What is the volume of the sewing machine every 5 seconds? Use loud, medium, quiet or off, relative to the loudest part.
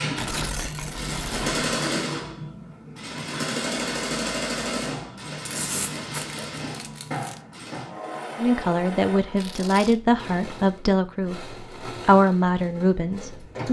loud, medium, medium.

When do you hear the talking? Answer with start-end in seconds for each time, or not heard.
8.3-13.6.